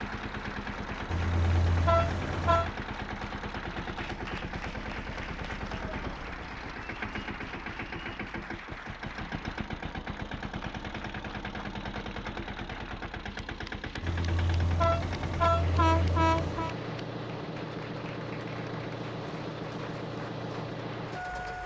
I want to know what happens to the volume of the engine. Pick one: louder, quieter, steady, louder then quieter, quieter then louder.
steady.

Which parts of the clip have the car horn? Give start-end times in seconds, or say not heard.
1.1-2.7, 14.0-16.8.